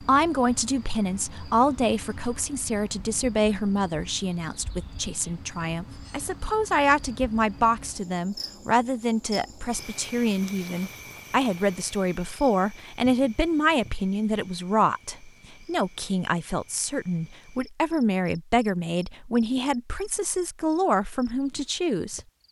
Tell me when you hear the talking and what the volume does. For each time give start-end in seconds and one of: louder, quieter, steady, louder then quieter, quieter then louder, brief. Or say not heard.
0.0-22.2 steady.